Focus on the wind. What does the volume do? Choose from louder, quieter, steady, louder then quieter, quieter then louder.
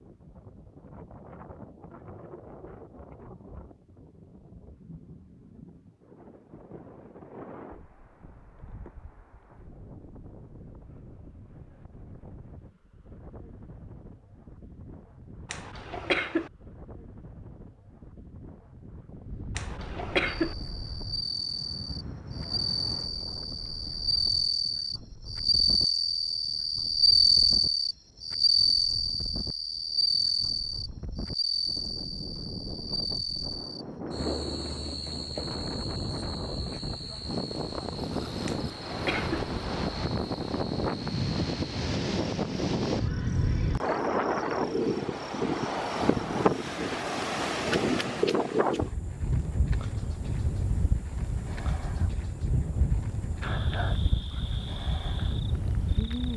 louder.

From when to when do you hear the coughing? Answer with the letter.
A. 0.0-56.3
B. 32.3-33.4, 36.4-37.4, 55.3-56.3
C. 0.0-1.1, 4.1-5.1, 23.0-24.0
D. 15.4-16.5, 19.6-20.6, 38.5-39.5
D.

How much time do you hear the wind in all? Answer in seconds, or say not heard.
56 s.